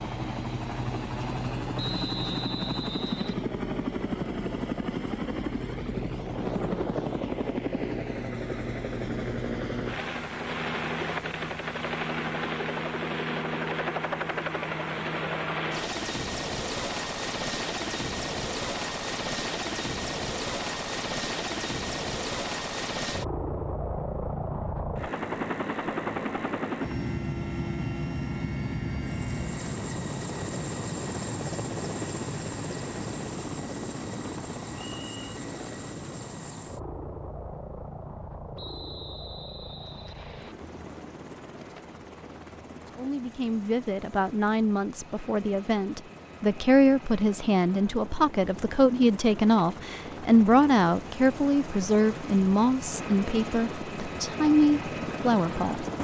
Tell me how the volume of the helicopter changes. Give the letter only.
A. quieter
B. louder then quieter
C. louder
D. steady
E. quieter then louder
A.